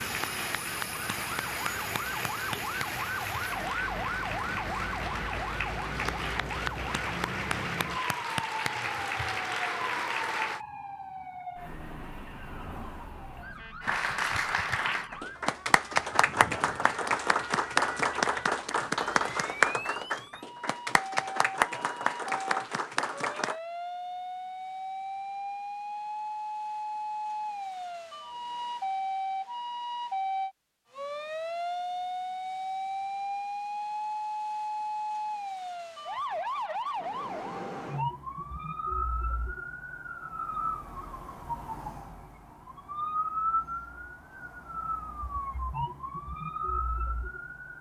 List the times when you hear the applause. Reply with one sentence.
The applause can be heard from 0.0 to 10.6 s and from 13.8 to 23.6 s.